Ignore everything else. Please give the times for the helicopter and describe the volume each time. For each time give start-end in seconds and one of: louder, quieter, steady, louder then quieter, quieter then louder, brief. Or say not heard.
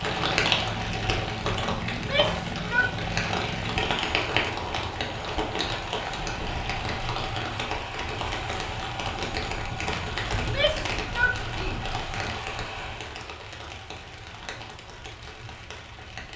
0.0-16.3 quieter.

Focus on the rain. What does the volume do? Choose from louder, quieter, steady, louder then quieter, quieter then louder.
quieter.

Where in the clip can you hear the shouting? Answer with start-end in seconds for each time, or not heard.
1.9-2.9, 10.3-12.4.